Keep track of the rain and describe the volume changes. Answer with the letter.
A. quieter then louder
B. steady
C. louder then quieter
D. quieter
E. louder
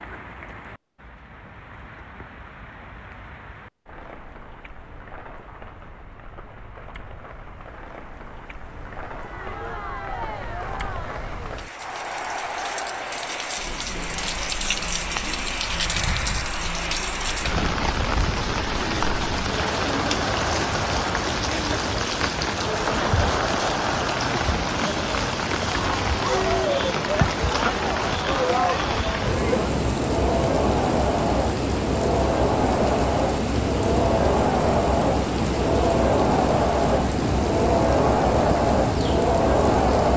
E.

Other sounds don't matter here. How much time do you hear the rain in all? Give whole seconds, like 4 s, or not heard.
40 s.